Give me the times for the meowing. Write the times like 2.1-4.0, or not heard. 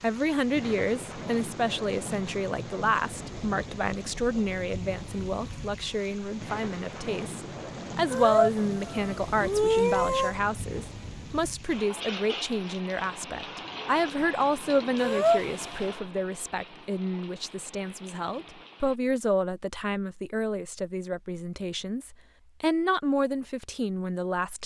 8.1-10.3, 15.0-15.7.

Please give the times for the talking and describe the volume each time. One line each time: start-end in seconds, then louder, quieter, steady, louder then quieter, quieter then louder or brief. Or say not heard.
0.0-24.6 steady.